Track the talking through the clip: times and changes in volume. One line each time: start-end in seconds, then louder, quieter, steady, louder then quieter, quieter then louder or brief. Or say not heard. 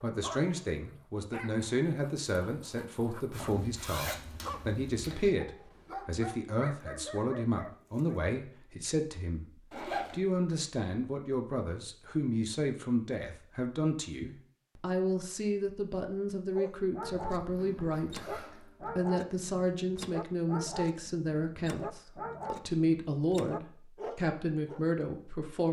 0.0-25.6 steady.